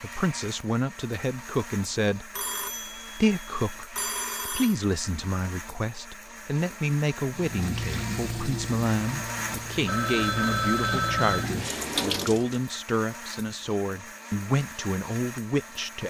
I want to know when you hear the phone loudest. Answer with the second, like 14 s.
11 s.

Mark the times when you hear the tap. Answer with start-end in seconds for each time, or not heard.
7.3-12.6.